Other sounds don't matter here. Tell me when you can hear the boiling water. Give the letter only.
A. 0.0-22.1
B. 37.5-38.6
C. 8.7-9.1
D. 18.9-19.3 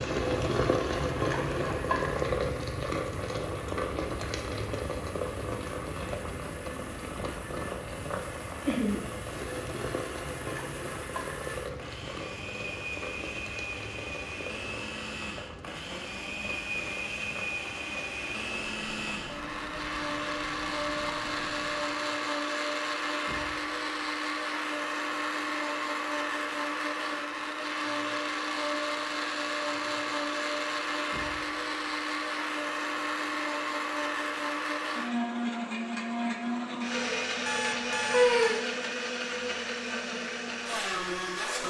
A.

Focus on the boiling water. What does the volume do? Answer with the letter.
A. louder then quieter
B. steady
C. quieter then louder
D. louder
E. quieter
E.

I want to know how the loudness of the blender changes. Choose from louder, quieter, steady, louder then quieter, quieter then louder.
louder.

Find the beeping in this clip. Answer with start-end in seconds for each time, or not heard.
37.5-38.6.